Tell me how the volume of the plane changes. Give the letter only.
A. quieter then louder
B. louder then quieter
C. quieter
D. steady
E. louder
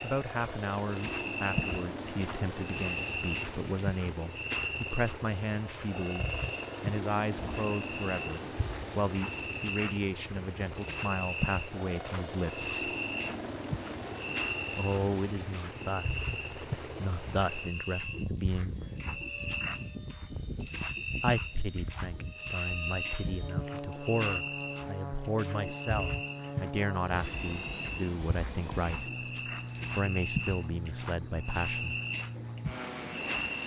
D.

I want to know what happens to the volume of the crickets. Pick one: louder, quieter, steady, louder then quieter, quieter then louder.
steady.